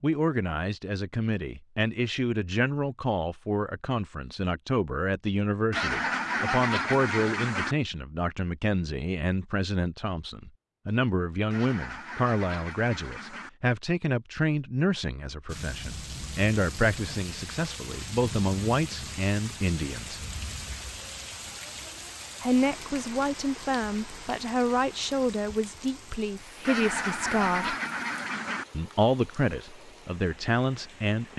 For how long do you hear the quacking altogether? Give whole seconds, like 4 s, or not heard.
6 s.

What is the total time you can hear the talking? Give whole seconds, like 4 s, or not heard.
28 s.